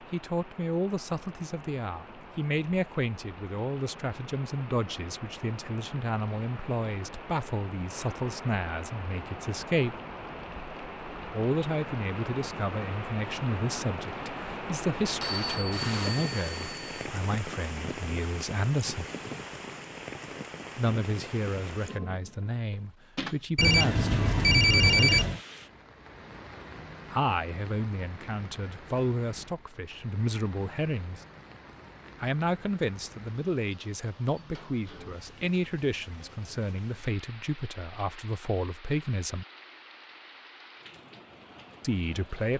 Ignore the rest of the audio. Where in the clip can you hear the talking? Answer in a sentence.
You can hear the talking from 0.1 to 10.0 s, from 11.3 to 19.1 s, from 20.8 to 25.3 s, from 27.1 to 31.2 s, from 32.2 to 39.5 s and from 41.8 to 42.5 s.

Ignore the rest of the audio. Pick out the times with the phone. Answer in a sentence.
The phone can be heard from 15.2 to 17.1 s and from 23.6 to 25.4 s.